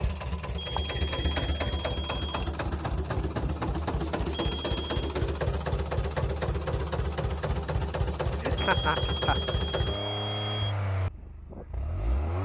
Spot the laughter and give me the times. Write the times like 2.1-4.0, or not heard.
8.4-9.4.